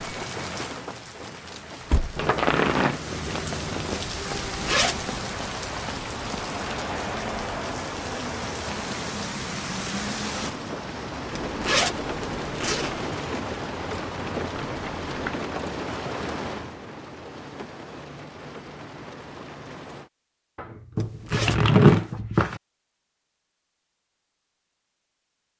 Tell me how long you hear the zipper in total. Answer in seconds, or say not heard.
4 s.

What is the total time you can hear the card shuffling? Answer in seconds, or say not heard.
5 s.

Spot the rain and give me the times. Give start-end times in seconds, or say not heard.
0.0-20.1.